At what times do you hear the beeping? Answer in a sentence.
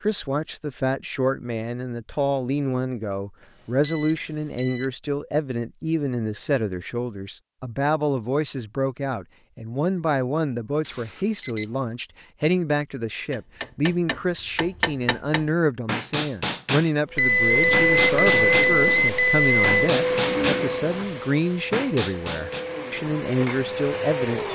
The beeping can be heard from 3.4 to 4.9 s, from 10.8 to 11.7 s and from 17.1 to 19.9 s.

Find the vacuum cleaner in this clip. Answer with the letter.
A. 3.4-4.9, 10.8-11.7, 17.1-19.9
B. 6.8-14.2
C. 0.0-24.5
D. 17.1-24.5
D.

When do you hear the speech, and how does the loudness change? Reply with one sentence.
You can hear the speech from 0.0 to 24.5 s, at a steady volume.